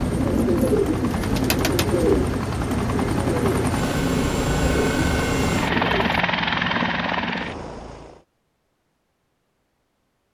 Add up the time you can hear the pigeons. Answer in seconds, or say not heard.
6 s.